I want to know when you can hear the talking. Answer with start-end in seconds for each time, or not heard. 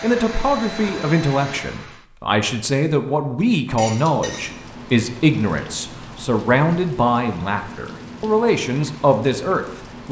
0.0-10.0.